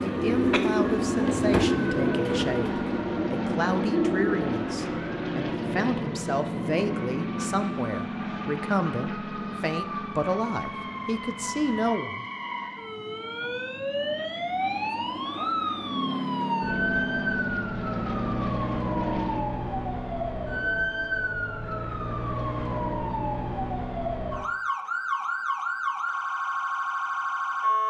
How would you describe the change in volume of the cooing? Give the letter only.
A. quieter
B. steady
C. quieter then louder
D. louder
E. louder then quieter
A.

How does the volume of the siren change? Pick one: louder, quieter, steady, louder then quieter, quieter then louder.
louder.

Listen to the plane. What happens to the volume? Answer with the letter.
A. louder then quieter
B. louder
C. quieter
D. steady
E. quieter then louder
E.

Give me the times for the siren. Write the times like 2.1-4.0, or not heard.
0.0-27.8.